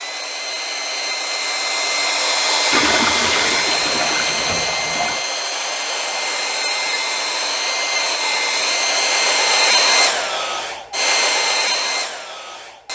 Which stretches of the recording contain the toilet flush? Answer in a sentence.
You can hear the toilet flush from 2.7 to 5.2 s.